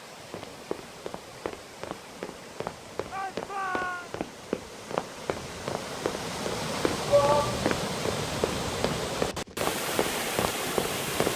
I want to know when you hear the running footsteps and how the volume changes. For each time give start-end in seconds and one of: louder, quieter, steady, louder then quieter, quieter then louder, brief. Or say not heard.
0.3-11.3 louder.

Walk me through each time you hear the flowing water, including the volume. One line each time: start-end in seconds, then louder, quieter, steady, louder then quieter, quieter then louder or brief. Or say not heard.
0.0-11.3 louder.